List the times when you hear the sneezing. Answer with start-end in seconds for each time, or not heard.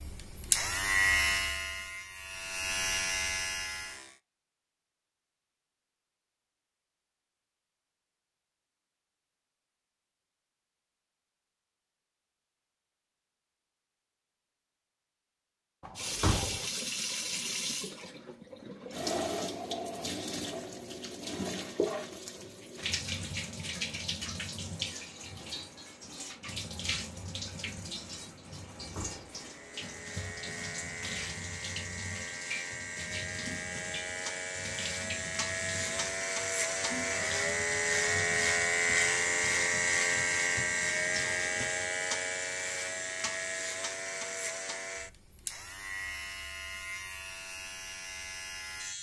not heard.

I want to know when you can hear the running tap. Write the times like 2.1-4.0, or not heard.
15.9-42.0.